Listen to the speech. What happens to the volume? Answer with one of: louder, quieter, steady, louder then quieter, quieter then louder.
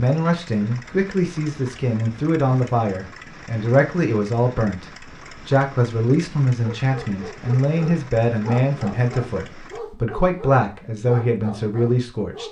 steady.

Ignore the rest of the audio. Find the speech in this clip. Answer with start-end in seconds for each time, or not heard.
0.0-4.8, 5.5-12.4.